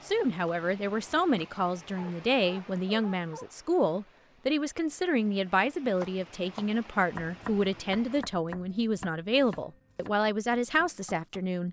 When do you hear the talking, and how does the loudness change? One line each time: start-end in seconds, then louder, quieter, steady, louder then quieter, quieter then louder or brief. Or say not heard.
0.1-11.6 steady.